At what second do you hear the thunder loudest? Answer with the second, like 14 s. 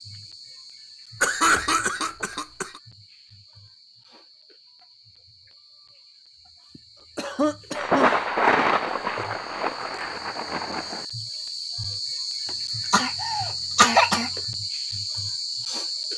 9 s.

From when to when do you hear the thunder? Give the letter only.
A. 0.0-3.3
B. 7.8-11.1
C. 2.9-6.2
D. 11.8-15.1
B.